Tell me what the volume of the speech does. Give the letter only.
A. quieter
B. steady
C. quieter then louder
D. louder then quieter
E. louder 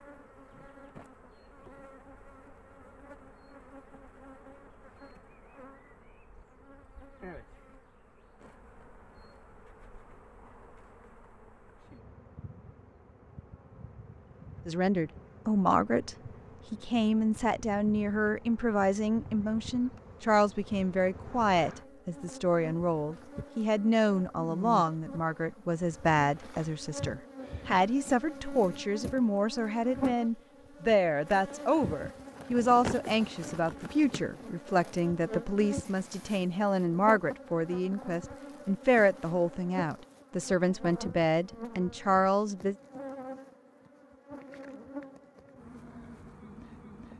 B.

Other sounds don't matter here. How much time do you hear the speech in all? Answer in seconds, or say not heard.
28 s.